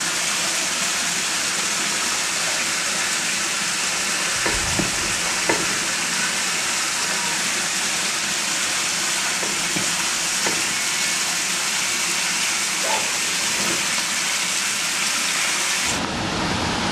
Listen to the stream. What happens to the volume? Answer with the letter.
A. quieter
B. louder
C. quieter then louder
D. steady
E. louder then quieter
D.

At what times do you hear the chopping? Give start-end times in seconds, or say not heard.
4.5-5.8, 9.4-10.8.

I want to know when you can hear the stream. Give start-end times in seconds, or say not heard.
0.0-16.8.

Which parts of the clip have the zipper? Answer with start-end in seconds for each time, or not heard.
4.3-5.2, 12.8-13.8.